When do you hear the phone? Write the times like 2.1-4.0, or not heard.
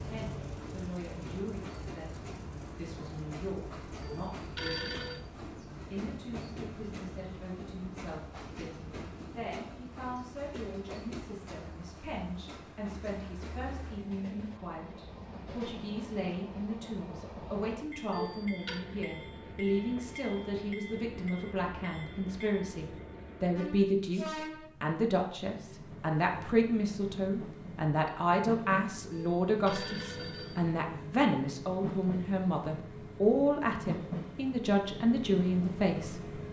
4.0-5.2, 18.1-18.8, 29.1-30.6.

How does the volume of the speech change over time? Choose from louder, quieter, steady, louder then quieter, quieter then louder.
louder.